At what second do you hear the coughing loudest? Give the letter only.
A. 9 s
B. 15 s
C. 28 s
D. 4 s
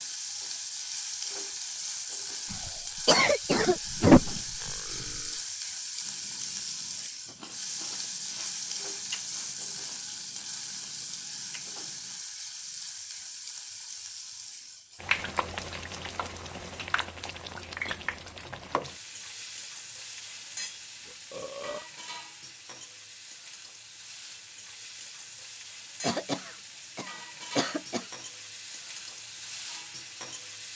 D.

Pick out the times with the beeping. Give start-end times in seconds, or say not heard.
not heard.